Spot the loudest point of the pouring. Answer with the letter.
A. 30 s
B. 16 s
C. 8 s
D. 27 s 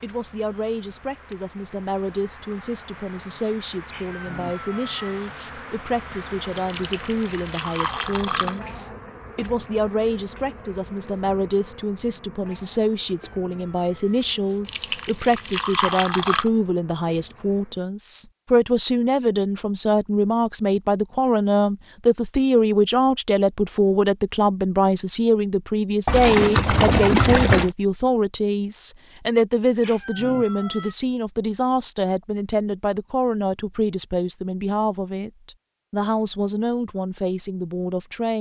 D.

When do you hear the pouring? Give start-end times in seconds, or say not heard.
6.7-8.6, 14.7-16.5, 26.1-27.7.